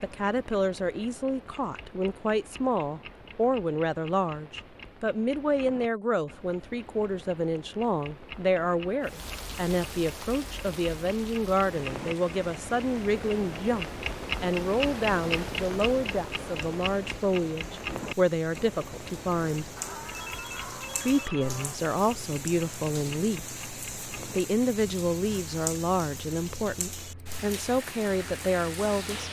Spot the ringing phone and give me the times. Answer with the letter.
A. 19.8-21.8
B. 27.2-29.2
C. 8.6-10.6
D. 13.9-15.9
A.